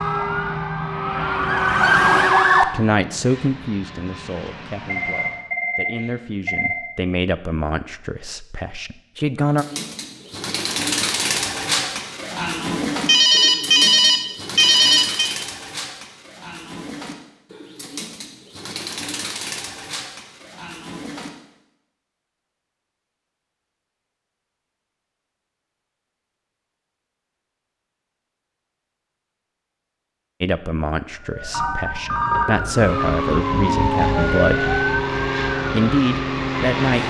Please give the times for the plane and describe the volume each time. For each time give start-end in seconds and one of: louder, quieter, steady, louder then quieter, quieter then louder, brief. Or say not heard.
0.0-5.5 quieter
32.7-37.0 steady.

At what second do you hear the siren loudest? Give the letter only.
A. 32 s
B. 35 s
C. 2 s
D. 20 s
C.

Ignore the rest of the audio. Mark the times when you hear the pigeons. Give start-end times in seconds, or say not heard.
9.5-21.3.